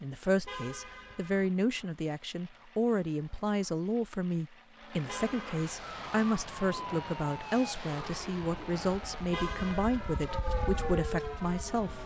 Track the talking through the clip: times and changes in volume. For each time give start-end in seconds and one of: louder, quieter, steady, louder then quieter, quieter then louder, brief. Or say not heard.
0.0-12.0 steady.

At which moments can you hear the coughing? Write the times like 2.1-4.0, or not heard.
not heard.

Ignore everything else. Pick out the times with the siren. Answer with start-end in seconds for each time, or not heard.
5.8-12.0.